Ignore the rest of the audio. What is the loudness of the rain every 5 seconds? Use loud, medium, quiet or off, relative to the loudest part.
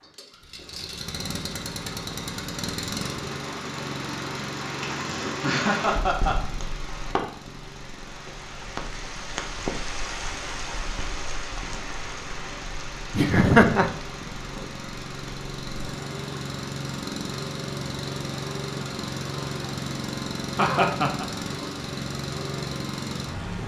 loud, loud, loud, medium, medium.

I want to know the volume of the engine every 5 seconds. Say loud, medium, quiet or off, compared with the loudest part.
loud, medium, medium, loud, loud.